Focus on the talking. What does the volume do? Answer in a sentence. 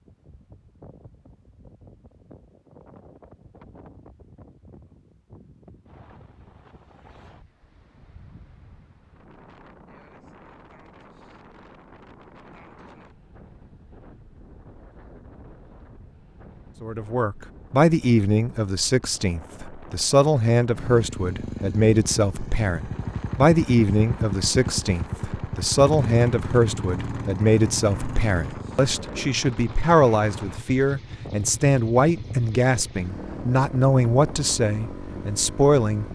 The volume of the talking stays about the same.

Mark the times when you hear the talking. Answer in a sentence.
The talking can be heard from 16.8 to 36.1 s.